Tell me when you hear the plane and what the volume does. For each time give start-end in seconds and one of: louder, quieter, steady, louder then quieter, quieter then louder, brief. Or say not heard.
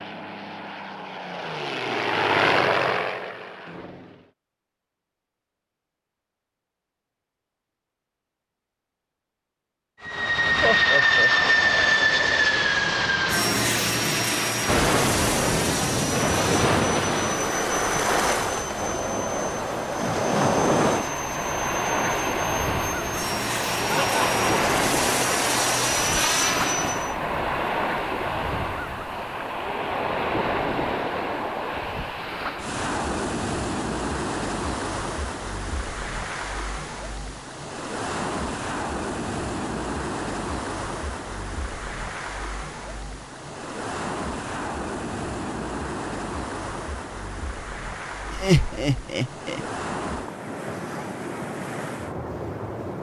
0.0-4.3 louder then quieter
10.0-27.1 quieter then louder.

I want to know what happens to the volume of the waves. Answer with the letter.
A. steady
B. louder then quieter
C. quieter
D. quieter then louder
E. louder
C.